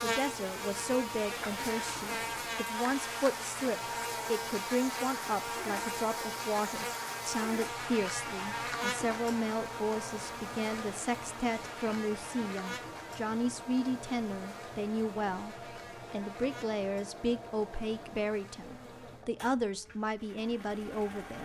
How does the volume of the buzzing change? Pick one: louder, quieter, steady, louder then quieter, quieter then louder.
quieter.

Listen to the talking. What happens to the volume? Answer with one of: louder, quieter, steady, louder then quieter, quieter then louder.
steady.